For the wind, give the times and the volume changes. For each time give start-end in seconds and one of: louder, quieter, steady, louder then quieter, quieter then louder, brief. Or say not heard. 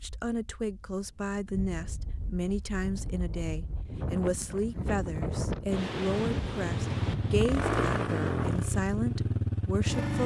0.0-8.6 louder.